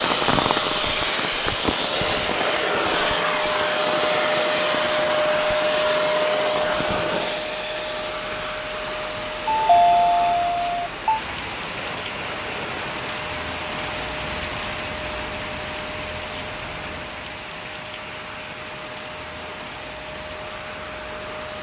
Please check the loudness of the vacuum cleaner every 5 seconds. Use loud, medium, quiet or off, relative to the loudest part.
loud, loud, quiet, quiet, quiet.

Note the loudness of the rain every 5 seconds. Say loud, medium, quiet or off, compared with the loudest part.
loud, medium, loud, loud, medium.